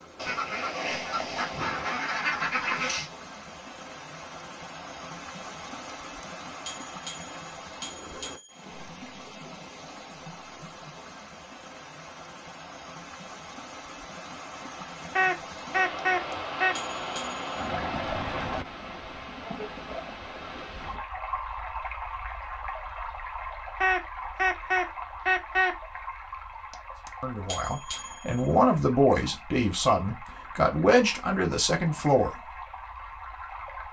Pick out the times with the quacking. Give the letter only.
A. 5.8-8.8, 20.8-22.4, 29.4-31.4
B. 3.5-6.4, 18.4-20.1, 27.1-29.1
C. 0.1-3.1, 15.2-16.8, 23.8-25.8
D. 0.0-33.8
C.